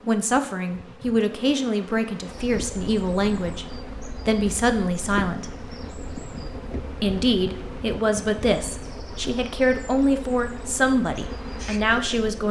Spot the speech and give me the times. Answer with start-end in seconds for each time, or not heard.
0.0-3.6, 4.2-5.5, 7.0-12.4.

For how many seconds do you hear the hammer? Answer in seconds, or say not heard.
not heard.